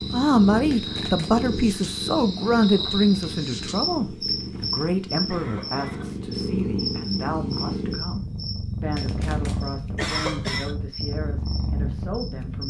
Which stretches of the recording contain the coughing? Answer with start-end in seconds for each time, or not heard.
0.7-1.4, 4.2-6.2, 8.9-10.8.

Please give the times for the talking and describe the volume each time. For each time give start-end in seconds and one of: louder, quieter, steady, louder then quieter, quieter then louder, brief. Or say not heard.
0.1-12.6 quieter.